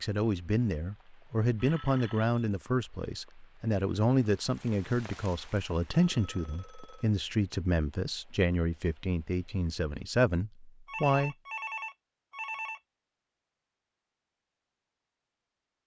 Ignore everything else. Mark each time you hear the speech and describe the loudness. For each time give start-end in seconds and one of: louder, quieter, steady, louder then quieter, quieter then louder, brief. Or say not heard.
0.0-11.3 steady.